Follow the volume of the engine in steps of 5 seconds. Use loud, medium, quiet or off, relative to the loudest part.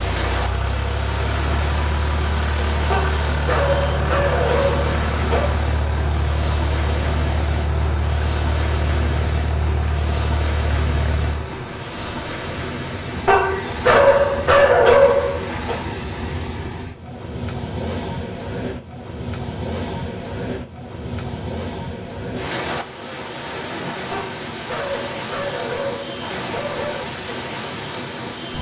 loud, loud, loud, off, off, off.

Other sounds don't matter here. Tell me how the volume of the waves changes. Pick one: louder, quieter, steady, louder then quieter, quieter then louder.
steady.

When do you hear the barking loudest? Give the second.
15 s.